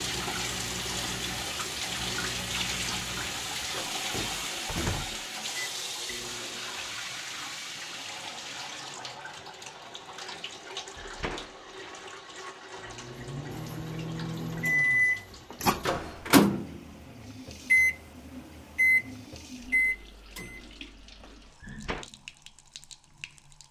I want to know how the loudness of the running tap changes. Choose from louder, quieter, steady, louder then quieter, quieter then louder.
quieter.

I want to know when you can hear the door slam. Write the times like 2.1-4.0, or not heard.
4.7-5.2, 10.9-11.8, 21.6-22.1.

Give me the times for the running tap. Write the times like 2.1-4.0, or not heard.
0.0-23.6.